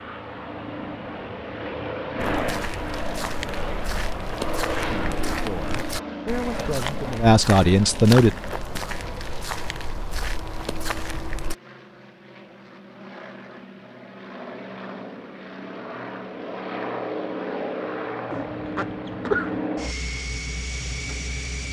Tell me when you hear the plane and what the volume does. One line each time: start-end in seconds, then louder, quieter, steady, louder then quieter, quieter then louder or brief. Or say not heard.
0.0-21.6 quieter then louder.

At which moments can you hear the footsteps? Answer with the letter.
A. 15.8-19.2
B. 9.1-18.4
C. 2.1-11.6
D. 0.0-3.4
C.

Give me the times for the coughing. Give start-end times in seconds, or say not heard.
18.3-19.6.